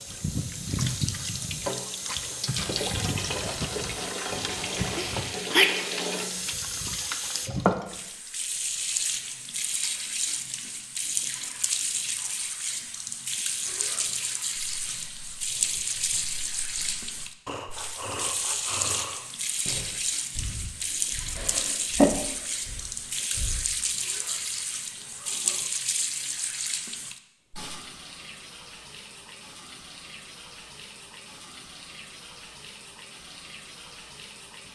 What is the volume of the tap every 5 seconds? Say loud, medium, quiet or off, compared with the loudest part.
loud, loud, loud, loud, loud, medium, quiet.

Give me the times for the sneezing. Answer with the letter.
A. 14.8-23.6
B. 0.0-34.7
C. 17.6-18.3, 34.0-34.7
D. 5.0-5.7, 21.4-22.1
D.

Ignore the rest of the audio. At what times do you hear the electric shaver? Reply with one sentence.
You can't hear the electric shaver here.